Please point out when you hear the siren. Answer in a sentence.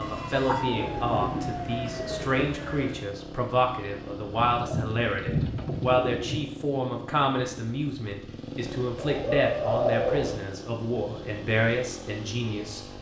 The siren can be heard from 0.0 to 3.0 s.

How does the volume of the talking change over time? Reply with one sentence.
The loudness of the talking stays about the same.